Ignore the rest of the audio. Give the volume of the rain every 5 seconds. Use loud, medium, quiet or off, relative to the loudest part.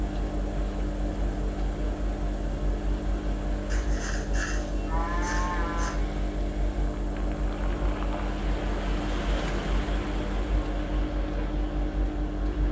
medium, loud, loud.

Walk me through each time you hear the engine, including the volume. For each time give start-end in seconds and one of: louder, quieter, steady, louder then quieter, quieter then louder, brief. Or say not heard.
0.0-12.6 steady.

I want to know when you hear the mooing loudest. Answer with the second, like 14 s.
5 s.